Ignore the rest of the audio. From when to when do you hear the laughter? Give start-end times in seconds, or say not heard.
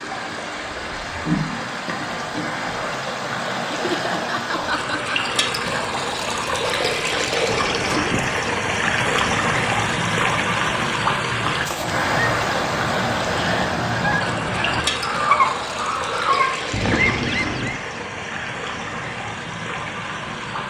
3.8-5.2.